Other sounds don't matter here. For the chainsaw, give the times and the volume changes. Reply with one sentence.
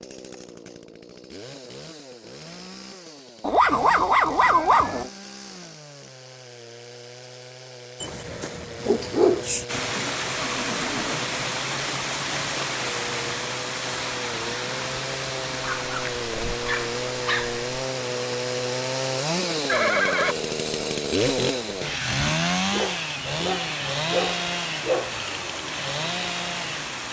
The chainsaw can be heard from 0.0 to 27.0 s, getting louder.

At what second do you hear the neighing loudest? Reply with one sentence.
The volume of the neighing peaks at 20 seconds.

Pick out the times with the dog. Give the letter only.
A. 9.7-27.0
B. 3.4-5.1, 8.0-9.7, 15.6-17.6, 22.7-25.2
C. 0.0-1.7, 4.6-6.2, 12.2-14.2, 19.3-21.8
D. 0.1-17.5
B.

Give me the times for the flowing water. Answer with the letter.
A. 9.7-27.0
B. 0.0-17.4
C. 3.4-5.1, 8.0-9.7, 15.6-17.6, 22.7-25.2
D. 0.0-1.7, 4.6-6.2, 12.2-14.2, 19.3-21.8
A.